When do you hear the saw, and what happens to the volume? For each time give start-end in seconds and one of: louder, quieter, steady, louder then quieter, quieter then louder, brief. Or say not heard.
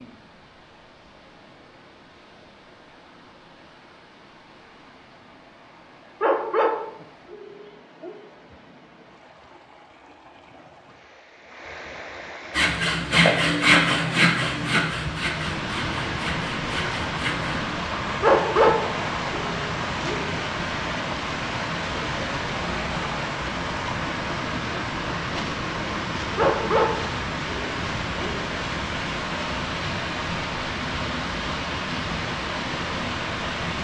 12.5-17.7 quieter.